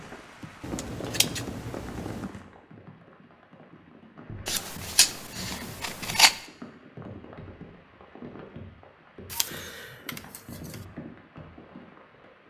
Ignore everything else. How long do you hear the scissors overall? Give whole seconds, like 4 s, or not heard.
5 s.